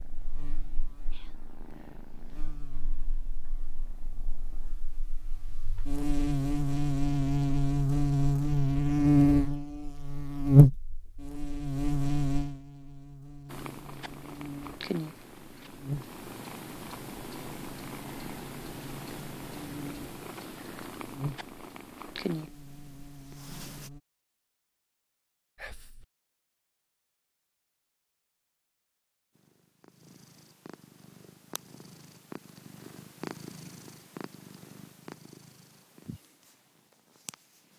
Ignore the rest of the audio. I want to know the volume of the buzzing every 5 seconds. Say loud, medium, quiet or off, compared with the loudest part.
quiet, loud, loud, quiet, quiet, off, off, off.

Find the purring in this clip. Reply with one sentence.
You can hear the purring from 0.0 to 4.8 s, from 13.4 to 23.9 s and from 29.4 to 37.7 s.